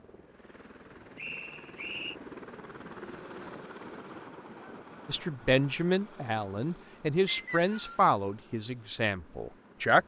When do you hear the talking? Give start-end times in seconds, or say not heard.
5.0-10.0.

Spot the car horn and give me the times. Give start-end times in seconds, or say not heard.
not heard.